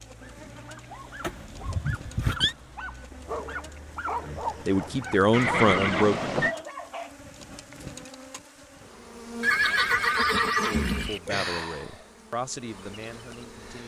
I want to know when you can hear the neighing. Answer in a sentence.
You can hear the neighing from 1.2 to 2.5 s, from 5.3 to 6.5 s and from 9.4 to 11.2 s.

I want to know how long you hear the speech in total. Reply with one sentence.
You can hear the speech for 5 seconds altogether.